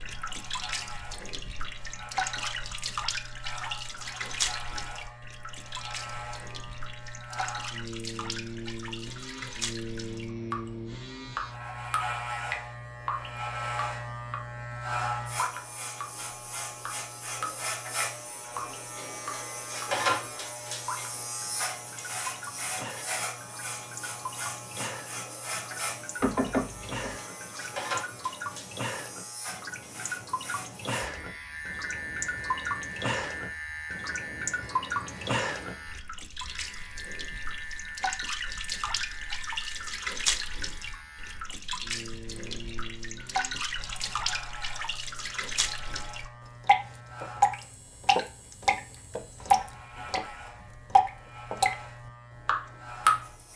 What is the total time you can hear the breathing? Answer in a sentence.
You can't hear the breathing here.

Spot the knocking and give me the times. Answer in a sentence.
The knocking can be heard from 26.2 to 27.1 s.